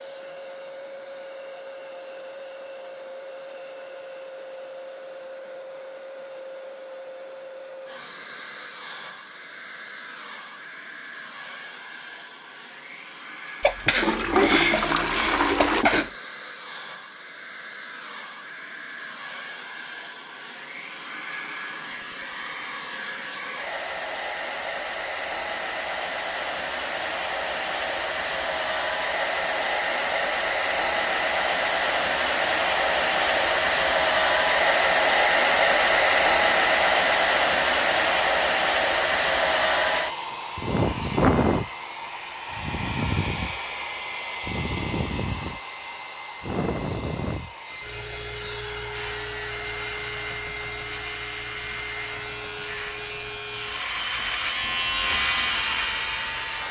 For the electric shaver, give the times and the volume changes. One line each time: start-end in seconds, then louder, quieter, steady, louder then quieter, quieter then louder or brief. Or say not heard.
48.9-56.6 louder.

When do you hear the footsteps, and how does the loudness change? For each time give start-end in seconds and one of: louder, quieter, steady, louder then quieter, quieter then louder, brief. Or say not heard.
not heard.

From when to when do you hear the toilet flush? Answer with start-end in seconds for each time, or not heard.
14.0-15.8.